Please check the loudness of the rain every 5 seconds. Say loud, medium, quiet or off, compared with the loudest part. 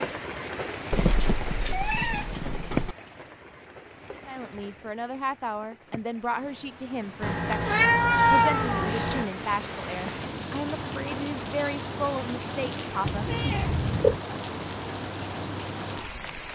loud, medium, loud, loud.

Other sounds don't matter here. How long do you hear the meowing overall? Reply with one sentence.
You can hear the meowing for 5 seconds altogether.